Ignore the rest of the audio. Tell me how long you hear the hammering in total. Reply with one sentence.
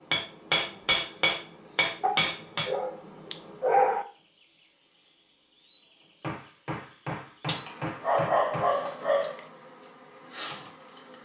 You can hear the hammering for 5 seconds altogether.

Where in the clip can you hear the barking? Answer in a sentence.
You can hear the barking from 2.0 to 4.0 s and from 7.5 to 9.4 s.